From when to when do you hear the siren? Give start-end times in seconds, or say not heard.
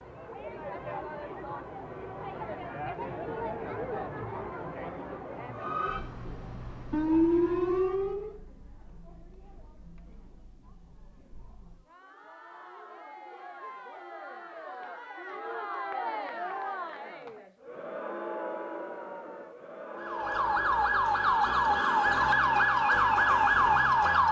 5.5-8.3, 19.9-24.2.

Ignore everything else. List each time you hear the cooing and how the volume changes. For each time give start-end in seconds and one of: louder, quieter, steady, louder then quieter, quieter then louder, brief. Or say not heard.
not heard.